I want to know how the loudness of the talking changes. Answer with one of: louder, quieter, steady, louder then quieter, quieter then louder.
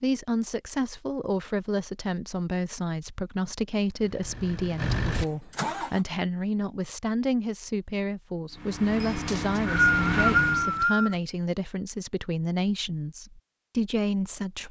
steady.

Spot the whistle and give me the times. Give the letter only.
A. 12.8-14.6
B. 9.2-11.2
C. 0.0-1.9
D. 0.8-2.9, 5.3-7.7
B.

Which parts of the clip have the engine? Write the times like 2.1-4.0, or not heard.
4.0-6.0, 8.5-10.8.